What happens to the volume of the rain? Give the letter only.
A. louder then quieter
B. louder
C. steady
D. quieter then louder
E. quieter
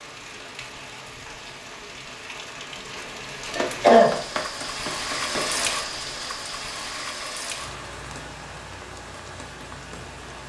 A.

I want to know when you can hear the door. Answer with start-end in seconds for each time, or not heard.
not heard.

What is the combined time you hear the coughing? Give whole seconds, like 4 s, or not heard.
2 s.